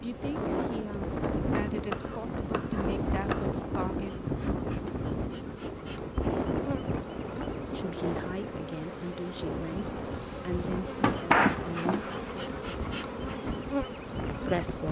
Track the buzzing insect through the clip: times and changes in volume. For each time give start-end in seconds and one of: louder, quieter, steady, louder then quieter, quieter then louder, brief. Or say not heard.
0.0-14.8 louder.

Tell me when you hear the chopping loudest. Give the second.
11 s.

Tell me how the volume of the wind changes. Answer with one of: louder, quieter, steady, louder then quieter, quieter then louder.
quieter.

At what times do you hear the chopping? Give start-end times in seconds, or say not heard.
1.9-3.5, 11.0-12.4.